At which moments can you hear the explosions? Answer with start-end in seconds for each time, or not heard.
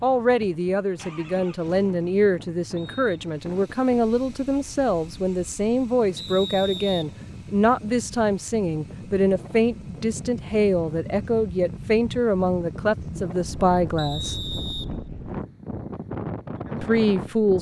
not heard.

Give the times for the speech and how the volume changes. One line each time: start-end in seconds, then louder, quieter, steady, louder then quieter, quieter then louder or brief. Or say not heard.
0.0-14.3 steady
16.8-17.5 brief.